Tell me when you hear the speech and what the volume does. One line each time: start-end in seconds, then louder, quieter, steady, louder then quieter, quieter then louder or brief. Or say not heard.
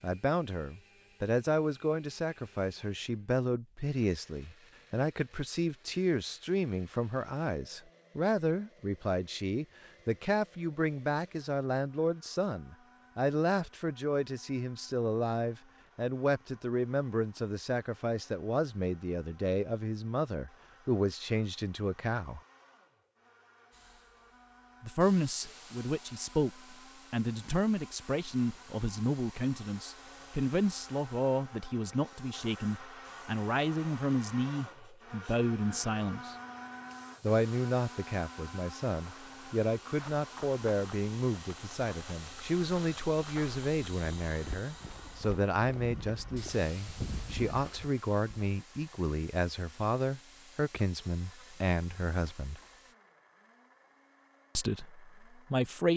0.0-22.4 steady
24.8-36.4 steady
37.2-52.6 steady
54.5-55.9 brief.